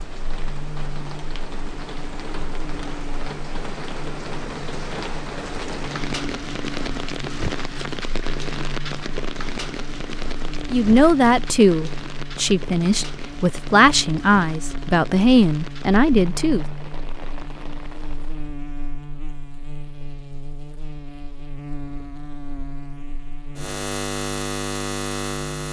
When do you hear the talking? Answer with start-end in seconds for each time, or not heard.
10.7-16.6.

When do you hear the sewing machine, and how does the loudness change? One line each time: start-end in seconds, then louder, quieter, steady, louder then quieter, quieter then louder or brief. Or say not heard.
not heard.